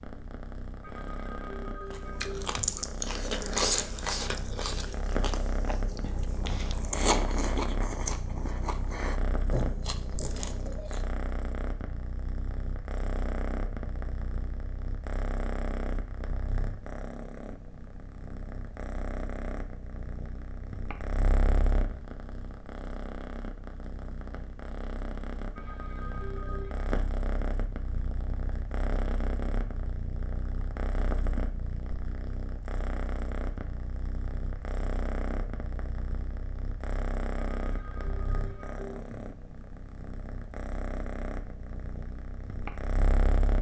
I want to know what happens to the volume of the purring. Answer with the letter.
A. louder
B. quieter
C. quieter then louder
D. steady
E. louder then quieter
D.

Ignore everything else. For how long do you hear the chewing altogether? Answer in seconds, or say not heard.
9 s.